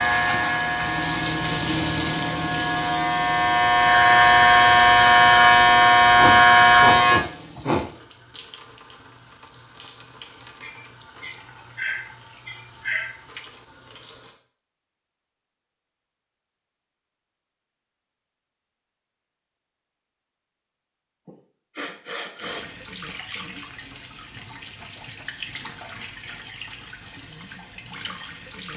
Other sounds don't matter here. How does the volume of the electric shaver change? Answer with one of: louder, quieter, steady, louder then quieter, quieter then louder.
louder.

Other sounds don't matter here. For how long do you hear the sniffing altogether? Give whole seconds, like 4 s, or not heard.
6 s.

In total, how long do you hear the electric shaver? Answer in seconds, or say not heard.
7 s.